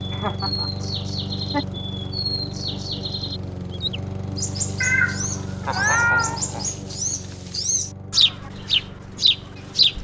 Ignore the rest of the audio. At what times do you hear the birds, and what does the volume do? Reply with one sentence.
The birds can be heard from 0.2 to 9.9 s, getting louder.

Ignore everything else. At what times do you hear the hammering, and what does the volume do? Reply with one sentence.
The hammering can't be heard in this clip.